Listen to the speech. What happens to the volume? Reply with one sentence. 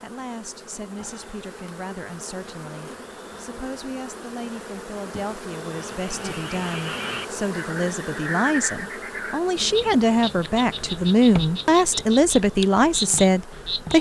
The volume of the speech goes up.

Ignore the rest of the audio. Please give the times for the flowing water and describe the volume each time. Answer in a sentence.
The flowing water can't be heard in this clip.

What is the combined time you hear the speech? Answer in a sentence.
You can hear the speech for 14 seconds altogether.